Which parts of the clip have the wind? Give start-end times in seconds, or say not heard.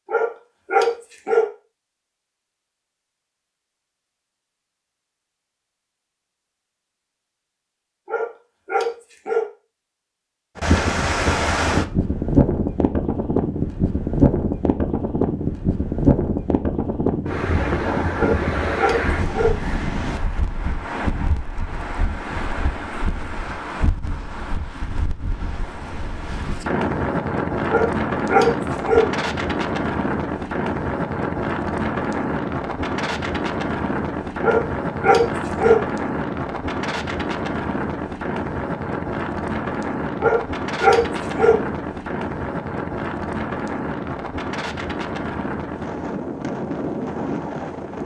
10.6-48.0.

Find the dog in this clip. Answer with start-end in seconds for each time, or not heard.
0.1-1.4, 8.1-9.4, 18.1-19.6, 27.6-29.1, 34.4-35.8, 40.2-41.5.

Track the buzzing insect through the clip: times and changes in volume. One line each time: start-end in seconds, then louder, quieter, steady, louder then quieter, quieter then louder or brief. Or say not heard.
not heard.